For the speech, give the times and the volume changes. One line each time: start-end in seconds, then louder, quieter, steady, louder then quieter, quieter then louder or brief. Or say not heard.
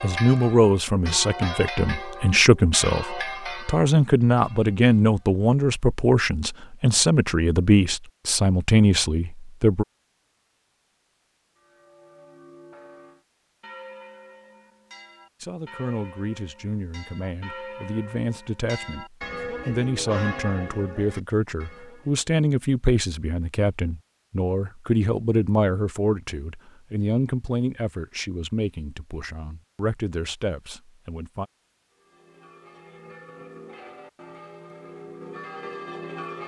0.0-9.8 steady
15.4-31.4 louder then quieter.